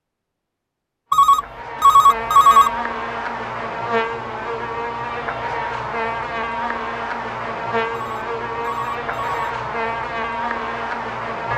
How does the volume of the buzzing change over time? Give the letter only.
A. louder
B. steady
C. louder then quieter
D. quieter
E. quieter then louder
B.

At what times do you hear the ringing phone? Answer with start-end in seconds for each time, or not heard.
1.1-2.7, 7.9-9.6.